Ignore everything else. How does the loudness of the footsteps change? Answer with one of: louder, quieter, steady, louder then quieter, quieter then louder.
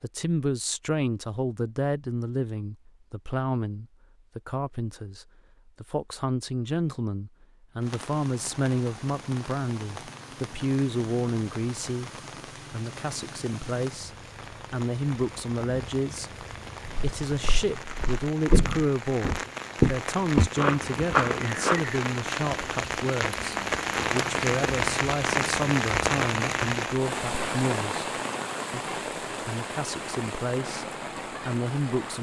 louder then quieter.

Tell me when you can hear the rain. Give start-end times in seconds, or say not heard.
7.8-32.1.